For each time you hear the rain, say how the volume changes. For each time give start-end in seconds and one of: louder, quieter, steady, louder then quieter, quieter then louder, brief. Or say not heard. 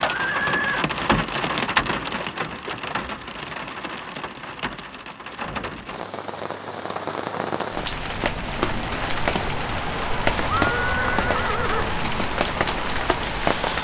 0.0-13.7 quieter then louder.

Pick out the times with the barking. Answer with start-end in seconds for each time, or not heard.
not heard.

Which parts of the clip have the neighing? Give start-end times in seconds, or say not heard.
0.1-0.8, 5.4-6.0, 10.4-11.9.